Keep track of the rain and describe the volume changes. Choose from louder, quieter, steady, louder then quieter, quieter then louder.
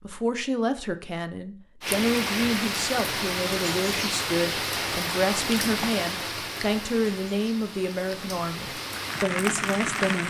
quieter then louder.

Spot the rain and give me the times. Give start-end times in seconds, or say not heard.
1.8-10.2.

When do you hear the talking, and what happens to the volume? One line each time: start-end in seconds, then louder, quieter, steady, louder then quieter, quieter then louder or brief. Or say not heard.
0.0-10.2 steady.